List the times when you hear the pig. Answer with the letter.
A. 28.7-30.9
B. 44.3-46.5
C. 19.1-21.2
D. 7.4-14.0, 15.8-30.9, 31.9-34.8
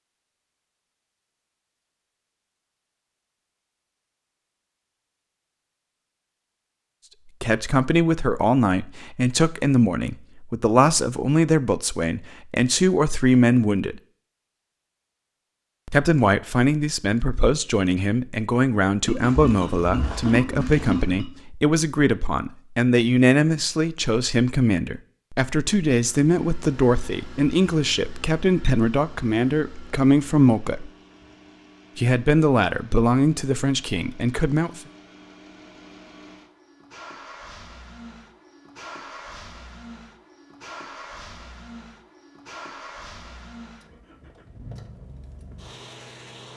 C.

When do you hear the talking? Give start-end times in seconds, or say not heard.
7.4-14.0, 15.8-30.9, 31.9-34.8.